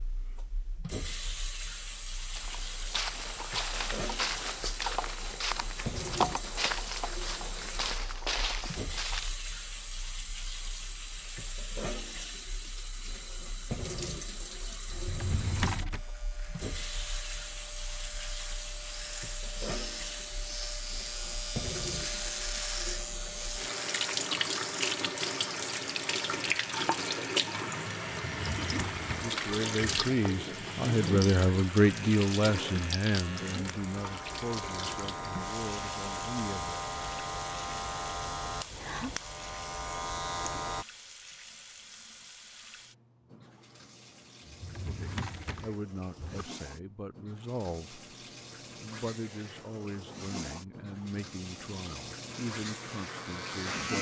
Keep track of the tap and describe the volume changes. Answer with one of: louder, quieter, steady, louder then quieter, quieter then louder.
louder then quieter.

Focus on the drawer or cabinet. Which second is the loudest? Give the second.
16 s.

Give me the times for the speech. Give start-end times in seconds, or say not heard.
29.2-36.8, 44.9-48.0, 48.8-53.9.